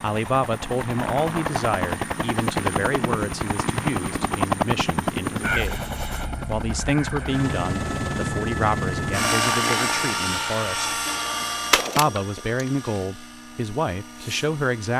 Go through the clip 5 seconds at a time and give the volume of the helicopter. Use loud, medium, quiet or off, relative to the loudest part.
loud, loud, medium.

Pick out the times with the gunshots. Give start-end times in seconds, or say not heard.
11.1-12.9.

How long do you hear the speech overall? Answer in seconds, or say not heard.
13 s.